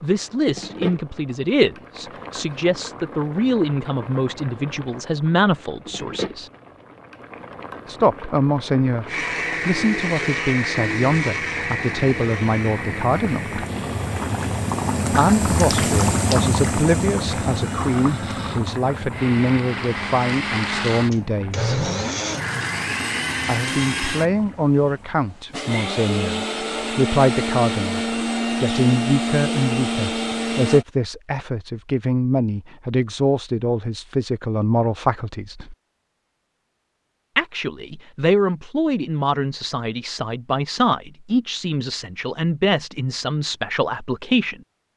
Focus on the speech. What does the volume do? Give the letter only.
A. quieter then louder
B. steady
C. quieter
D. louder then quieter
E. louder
B.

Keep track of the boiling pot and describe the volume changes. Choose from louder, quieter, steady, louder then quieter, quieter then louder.
louder then quieter.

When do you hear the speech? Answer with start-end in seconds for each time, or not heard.
0.0-6.5, 7.8-13.6, 15.1-21.8, 23.4-35.8, 37.4-44.6.